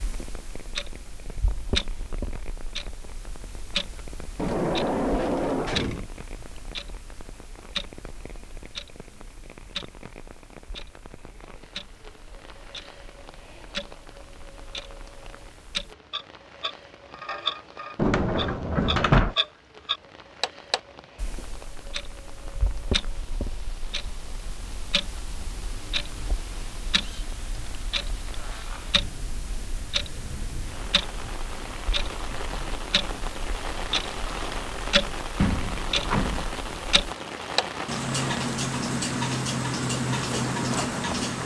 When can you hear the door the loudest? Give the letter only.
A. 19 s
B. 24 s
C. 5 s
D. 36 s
A.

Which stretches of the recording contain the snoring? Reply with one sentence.
You can't hear the snoring here.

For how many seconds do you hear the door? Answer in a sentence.
You can hear the door for 4 seconds altogether.